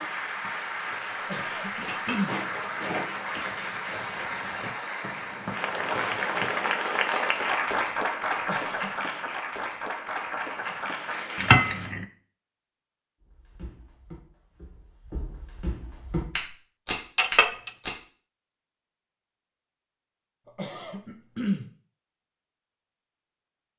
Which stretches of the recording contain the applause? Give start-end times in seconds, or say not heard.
0.0-11.9.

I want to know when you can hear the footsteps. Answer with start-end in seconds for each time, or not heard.
0.0-6.5, 13.3-17.9.